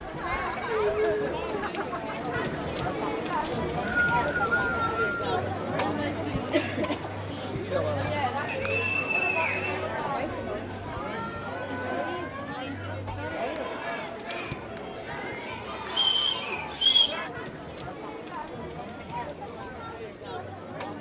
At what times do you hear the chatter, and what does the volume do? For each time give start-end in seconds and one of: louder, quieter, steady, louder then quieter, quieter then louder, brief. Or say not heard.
0.0-20.9 quieter.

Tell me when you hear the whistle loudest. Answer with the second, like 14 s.
17 s.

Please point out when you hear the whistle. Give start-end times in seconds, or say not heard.
3.4-5.2, 8.4-9.8, 15.9-17.2.